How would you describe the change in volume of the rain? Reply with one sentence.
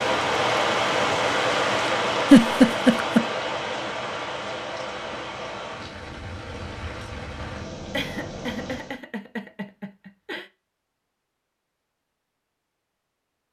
The volume of the rain goes down.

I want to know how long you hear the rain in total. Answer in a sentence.
You can hear the rain for 9 seconds altogether.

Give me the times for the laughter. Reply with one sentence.
The laughter can be heard from 2.3 to 3.2 s and from 7.9 to 10.4 s.